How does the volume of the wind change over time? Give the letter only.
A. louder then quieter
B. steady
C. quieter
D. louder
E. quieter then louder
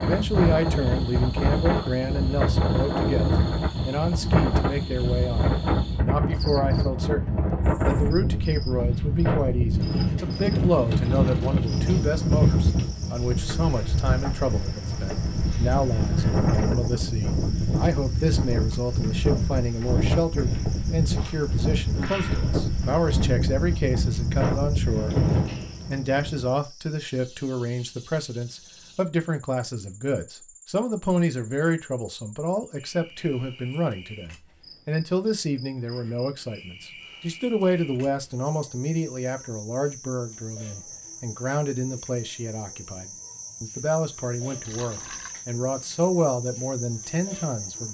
B.